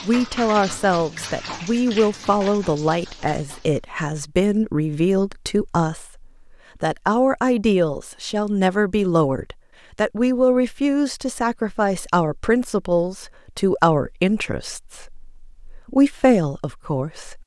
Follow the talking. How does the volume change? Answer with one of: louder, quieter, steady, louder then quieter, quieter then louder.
steady.